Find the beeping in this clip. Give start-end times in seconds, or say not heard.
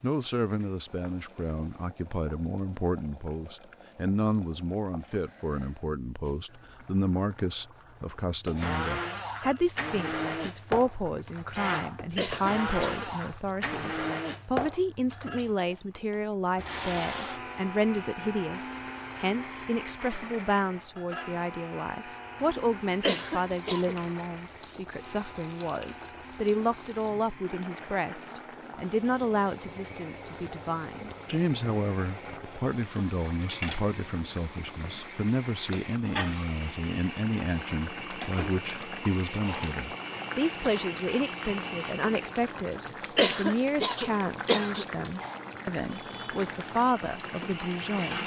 not heard.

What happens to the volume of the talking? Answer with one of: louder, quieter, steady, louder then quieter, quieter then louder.
steady.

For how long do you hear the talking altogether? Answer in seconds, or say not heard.
48 s.